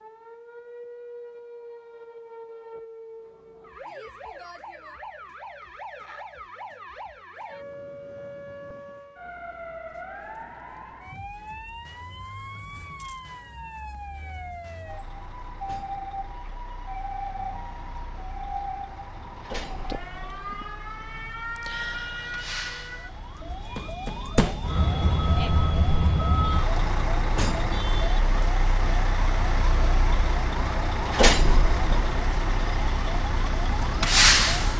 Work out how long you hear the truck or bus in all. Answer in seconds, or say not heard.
20 s.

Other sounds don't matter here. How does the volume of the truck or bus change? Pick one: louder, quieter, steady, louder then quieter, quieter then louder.
louder.